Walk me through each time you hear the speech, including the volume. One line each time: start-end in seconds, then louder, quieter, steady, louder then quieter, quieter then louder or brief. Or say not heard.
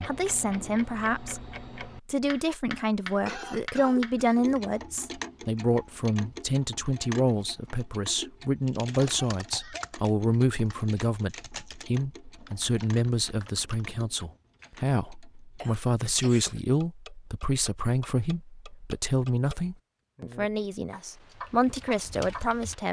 0.1-1.4 brief
2.0-22.8 steady.